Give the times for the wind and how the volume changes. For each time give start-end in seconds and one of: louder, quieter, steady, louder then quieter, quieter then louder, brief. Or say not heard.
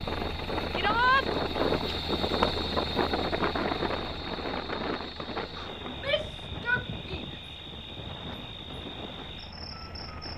0.0-10.3 quieter.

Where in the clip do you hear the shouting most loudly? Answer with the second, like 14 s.
1 s.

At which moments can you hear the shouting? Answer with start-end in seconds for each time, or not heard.
0.8-1.2, 5.8-7.3.